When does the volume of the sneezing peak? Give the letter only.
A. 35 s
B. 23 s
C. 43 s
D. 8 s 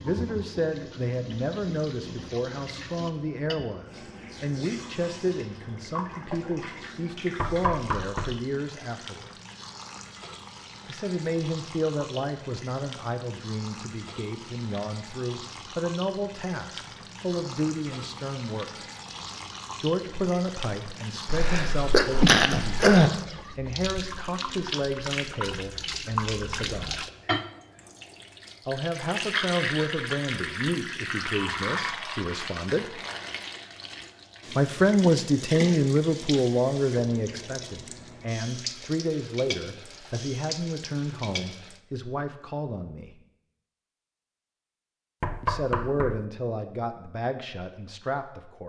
B.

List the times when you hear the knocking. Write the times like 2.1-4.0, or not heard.
7.4-8.4, 45.2-46.2.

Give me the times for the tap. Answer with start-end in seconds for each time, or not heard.
0.0-41.8.